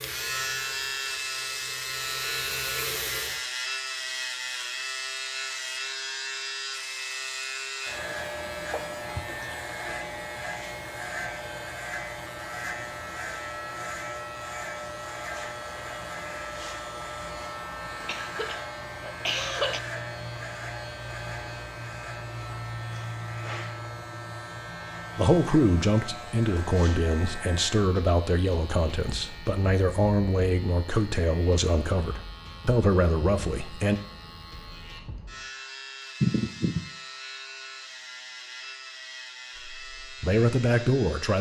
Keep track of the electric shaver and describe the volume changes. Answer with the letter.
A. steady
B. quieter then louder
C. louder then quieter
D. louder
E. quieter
E.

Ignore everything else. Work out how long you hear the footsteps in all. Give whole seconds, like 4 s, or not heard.
not heard.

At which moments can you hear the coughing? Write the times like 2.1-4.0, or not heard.
8.7-9.3, 18.1-19.8, 36.2-36.9.